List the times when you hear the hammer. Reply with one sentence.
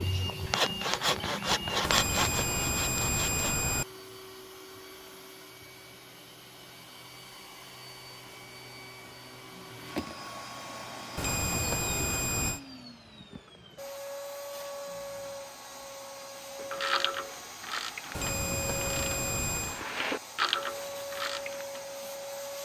The hammer can't be heard in this clip.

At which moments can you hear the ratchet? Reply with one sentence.
The ratchet can be heard from 16.6 to 21.8 s.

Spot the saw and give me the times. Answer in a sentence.
You can hear the saw from 0.0 to 3.6 s.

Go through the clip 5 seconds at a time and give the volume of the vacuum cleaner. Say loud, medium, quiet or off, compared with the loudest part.
medium, medium, loud, loud, loud.